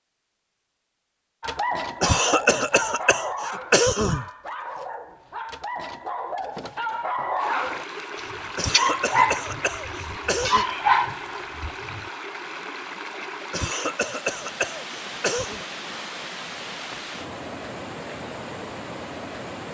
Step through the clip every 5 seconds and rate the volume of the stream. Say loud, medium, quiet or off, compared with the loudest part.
off, loud, loud, loud.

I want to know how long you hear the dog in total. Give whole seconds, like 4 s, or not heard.
11 s.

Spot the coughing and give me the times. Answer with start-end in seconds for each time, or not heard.
2.0-4.2, 8.6-10.7, 13.5-15.6.